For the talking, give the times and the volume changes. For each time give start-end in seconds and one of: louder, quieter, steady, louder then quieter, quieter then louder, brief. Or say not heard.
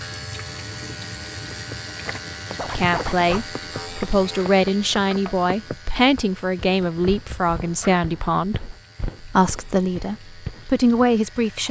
2.8-11.6 steady.